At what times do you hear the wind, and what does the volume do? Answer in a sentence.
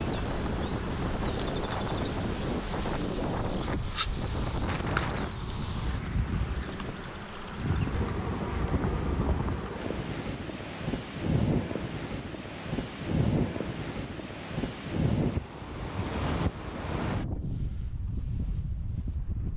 The wind can be heard from 0.0 to 19.5 s, at a steady volume.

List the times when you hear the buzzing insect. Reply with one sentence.
The buzzing insect can be heard from 0.0 to 10.1 s.